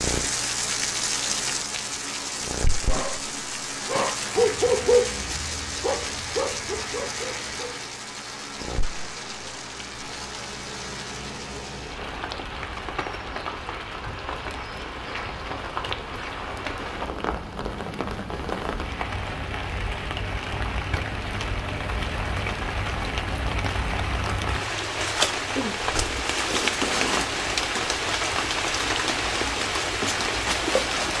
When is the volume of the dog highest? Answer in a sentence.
The loudest moment of the dog is at 5 seconds.